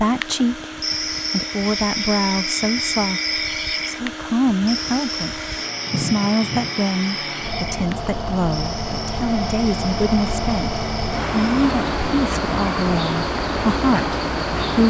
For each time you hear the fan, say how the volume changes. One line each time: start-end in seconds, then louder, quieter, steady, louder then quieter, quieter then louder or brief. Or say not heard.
0.0-14.8 louder.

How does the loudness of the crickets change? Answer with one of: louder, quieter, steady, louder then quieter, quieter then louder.
quieter.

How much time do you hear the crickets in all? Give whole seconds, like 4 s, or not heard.
15 s.